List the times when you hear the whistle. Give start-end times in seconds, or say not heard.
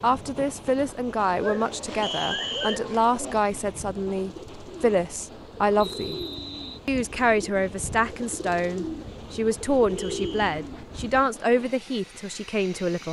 2.0-2.8, 5.8-6.8, 9.9-10.5.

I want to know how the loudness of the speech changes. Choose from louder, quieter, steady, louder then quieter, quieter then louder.
steady.